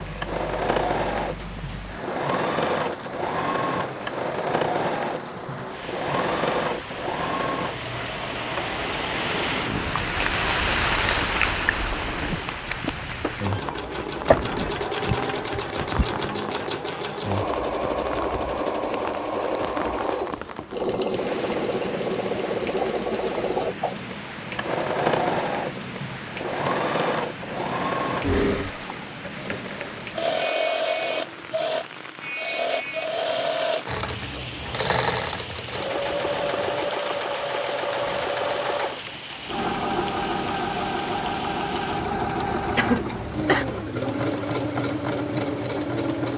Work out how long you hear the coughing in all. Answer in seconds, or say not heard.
3 s.